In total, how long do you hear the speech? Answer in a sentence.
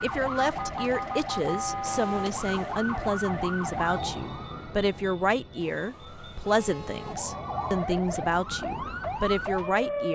You can hear the speech for 10 seconds altogether.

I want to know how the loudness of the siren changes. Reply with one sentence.
The volume of the siren goes down, then up.